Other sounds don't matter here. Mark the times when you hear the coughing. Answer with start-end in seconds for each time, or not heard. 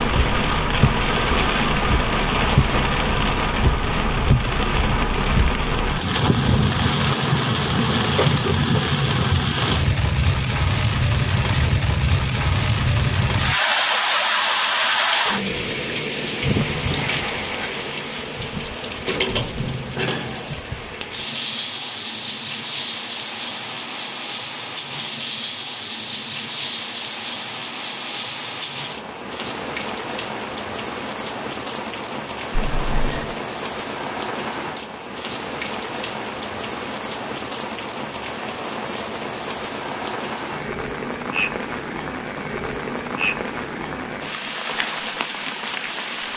8.2-8.9, 32.5-33.4.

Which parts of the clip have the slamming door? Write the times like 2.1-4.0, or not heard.
not heard.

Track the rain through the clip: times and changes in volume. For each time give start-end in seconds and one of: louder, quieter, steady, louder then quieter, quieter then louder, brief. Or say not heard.
0.0-46.3 quieter.